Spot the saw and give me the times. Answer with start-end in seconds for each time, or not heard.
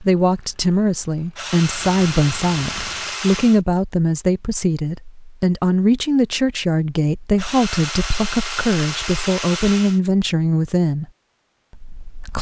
1.4-3.6, 7.3-10.0.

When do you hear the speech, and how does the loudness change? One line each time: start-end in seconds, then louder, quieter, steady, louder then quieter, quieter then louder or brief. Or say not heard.
0.0-11.1 steady
11.8-12.3 brief.